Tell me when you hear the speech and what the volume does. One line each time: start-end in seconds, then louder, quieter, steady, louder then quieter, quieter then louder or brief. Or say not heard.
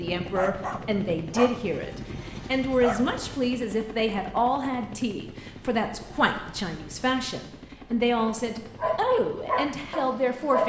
0.0-10.6 steady.